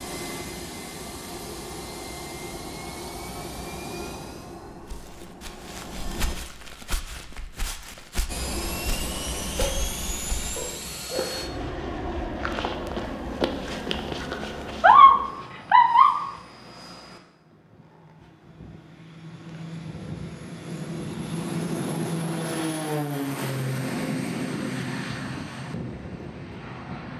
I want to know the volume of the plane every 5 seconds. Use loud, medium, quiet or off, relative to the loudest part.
medium, medium, medium, quiet, loud, medium.